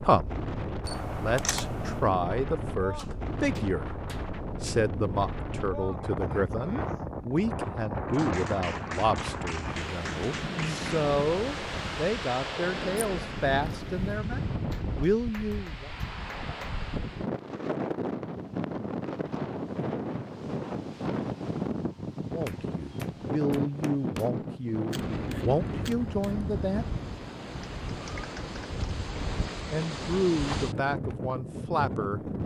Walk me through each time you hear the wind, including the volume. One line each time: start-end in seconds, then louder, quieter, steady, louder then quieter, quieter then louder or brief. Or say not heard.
0.0-32.4 steady.